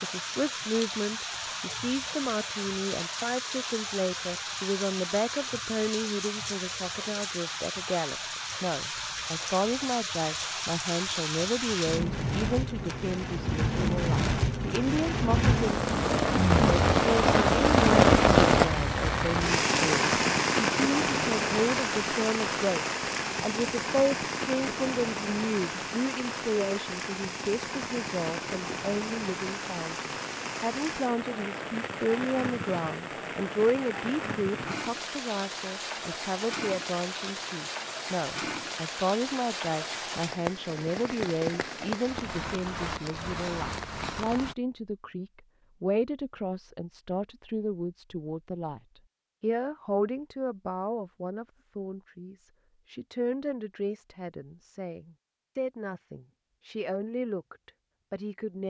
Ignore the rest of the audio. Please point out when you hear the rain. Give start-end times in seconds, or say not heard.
0.0-44.5.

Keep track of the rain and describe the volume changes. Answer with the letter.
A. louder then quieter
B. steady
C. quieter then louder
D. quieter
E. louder
A.